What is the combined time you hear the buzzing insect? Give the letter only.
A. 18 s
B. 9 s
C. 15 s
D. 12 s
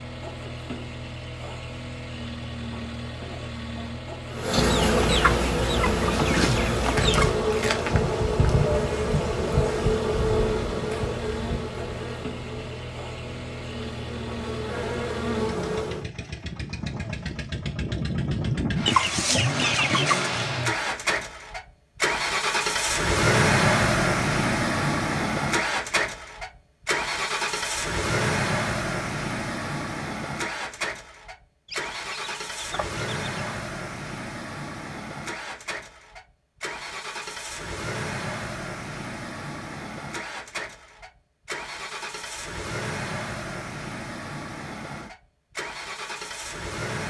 D.